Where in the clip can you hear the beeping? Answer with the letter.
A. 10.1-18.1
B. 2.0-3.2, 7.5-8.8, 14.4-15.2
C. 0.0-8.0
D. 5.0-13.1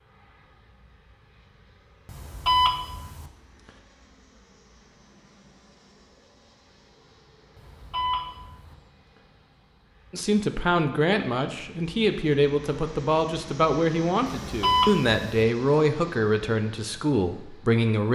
B.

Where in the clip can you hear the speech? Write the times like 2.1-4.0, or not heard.
10.1-18.1.